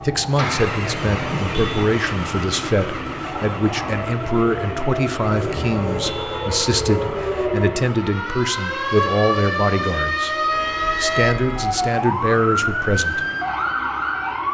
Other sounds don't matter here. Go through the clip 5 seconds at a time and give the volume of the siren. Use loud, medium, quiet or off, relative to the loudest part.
medium, loud, loud.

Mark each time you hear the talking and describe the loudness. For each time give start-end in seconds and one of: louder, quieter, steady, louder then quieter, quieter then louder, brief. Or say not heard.
0.0-13.2 steady.